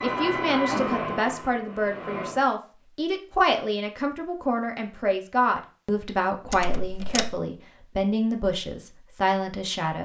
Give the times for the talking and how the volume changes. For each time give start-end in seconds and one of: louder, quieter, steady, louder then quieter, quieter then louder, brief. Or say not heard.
0.0-9.9 steady.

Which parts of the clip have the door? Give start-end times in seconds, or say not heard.
6.5-7.4.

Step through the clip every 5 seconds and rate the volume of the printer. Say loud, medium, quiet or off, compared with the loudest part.
loud, off.